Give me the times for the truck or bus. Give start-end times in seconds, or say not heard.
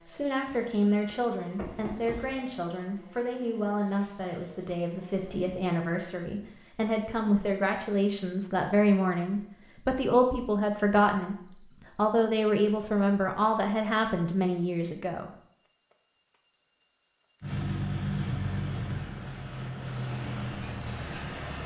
17.4-21.6.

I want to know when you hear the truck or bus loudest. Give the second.
18 s.